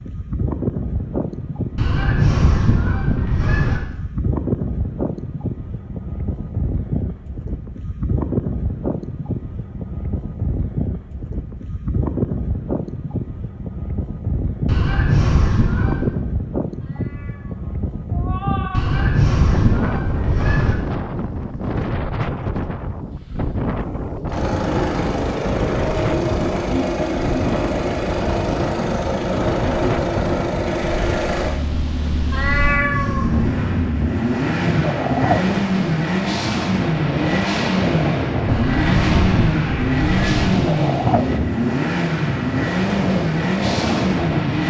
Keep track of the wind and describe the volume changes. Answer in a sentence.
The volume of the wind stays about the same.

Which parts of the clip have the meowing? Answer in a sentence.
The meowing can be heard from 16.9 to 18.8 s and from 32.3 to 33.3 s.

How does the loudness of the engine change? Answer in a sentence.
The loudness of the engine stays about the same.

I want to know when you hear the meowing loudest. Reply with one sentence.
The volume of the meowing peaks at 33 seconds.